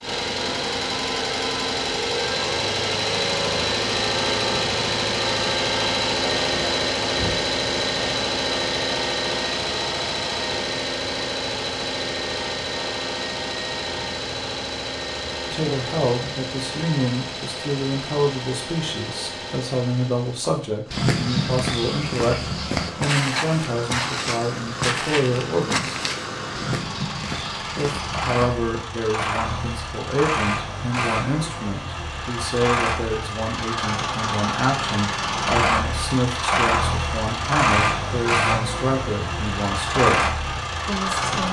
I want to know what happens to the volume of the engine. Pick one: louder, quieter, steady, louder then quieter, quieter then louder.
quieter then louder.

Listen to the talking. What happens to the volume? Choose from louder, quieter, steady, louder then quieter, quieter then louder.
steady.